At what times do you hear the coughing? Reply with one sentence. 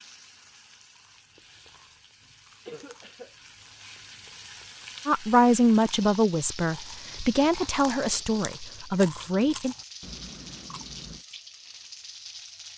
You can hear the coughing from 2.6 to 3.4 s.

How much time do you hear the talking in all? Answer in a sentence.
The talking can be heard for 5 seconds in total.